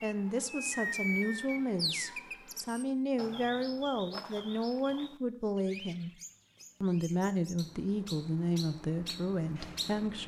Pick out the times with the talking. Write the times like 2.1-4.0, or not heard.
0.0-6.1, 6.8-10.2.